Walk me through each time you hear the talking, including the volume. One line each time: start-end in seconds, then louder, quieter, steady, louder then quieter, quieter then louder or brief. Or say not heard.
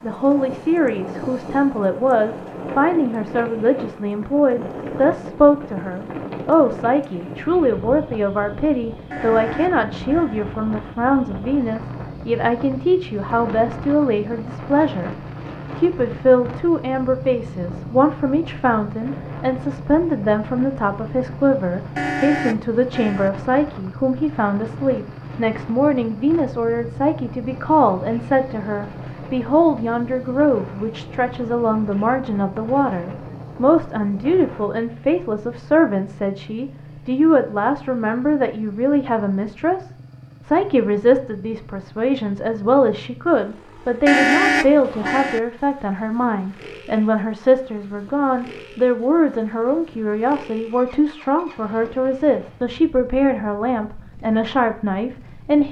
0.0-15.2 steady
15.8-55.6 steady.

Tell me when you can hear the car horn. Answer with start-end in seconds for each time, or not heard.
9.1-10.4, 21.9-23.3, 44.0-45.4.